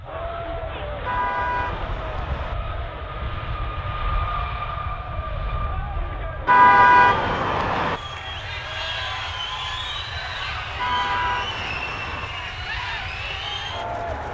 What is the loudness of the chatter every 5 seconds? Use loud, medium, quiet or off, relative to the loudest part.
medium, loud, loud.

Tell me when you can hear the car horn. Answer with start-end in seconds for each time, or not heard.
1.1-2.5, 6.5-8.0, 10.8-12.3.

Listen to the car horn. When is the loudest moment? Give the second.
7 s.